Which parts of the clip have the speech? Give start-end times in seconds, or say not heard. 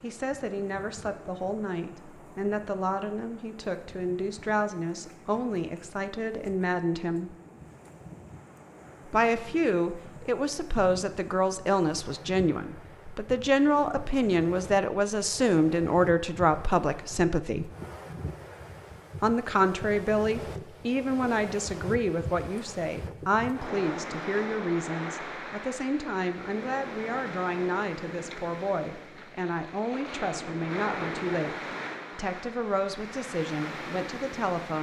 0.0-7.3, 9.1-17.7, 19.2-31.6, 32.1-34.7.